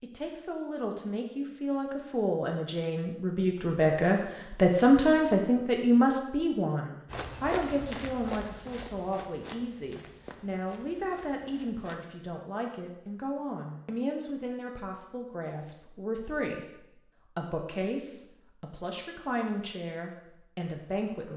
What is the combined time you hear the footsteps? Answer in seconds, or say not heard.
5 s.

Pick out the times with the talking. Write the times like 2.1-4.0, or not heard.
0.0-21.3.